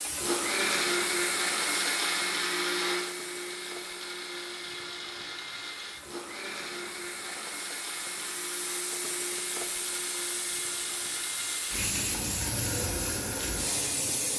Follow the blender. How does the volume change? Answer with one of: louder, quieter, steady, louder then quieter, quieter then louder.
quieter.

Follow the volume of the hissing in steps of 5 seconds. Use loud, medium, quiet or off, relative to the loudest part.
medium, medium, loud.